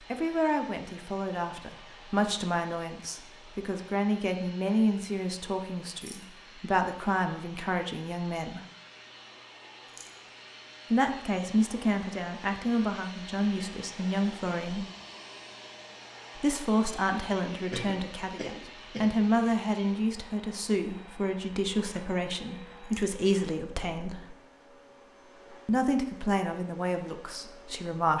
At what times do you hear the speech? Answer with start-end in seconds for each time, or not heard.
0.1-8.6, 10.9-14.8, 16.4-24.4, 25.6-28.1.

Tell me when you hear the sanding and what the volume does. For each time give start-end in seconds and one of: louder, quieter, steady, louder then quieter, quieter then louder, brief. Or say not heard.
not heard.